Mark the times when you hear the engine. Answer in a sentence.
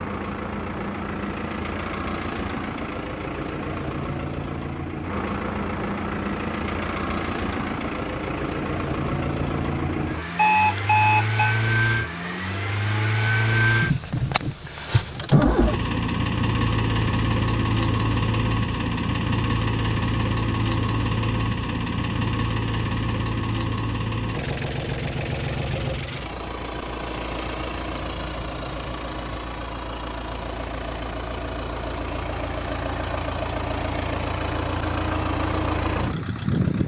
The engine can be heard from 0.0 to 36.8 s.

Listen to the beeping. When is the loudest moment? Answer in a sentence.
The volume of the beeping peaks at 11 seconds.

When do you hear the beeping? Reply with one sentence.
The beeping can be heard from 10.3 to 11.6 s and from 27.9 to 29.4 s.